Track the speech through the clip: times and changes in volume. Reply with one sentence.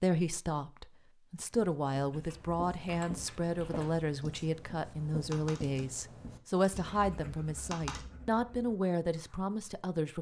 You can hear the speech from 0.0 to 10.1 s, at a steady volume.